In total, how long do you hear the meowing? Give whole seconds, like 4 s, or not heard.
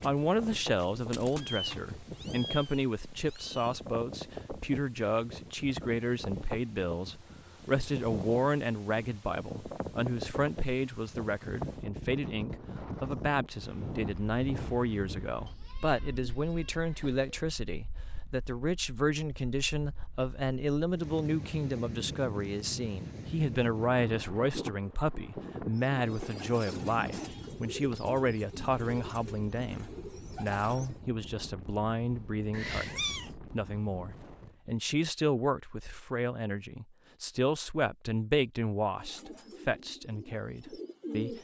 5 s.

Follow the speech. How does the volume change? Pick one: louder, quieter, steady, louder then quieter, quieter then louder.
steady.